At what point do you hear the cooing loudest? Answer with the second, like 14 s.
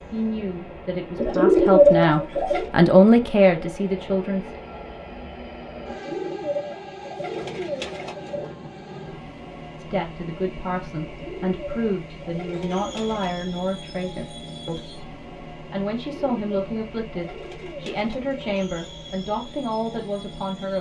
2 s.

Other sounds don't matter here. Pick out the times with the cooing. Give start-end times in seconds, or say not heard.
1.1-2.7, 5.8-8.5, 11.0-13.3, 15.9-18.4.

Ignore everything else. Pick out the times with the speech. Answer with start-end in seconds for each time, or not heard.
0.1-4.6, 9.8-20.7.